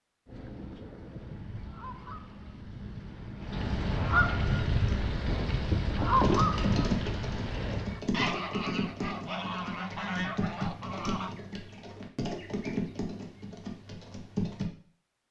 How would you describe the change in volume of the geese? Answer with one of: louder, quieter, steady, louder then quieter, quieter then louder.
louder then quieter.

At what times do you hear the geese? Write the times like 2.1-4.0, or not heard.
0.2-11.3.